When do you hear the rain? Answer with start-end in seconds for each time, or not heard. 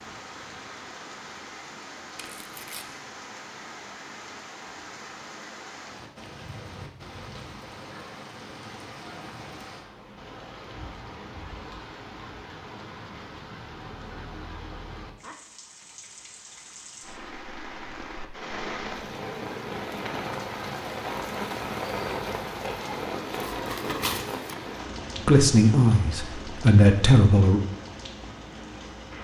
0.0-29.1.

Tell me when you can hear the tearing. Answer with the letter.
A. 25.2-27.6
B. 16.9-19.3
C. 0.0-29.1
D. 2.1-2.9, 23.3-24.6
D.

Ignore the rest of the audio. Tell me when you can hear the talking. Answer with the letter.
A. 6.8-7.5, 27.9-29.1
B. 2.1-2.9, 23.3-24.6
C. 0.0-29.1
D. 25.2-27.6
D.